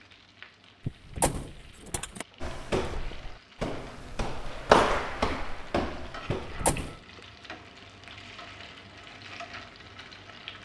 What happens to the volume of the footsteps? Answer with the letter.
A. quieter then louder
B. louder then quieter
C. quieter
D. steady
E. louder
B.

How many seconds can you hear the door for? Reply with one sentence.
You can hear the door for 2 seconds altogether.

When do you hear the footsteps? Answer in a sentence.
You can hear the footsteps from 2.4 to 7.2 s.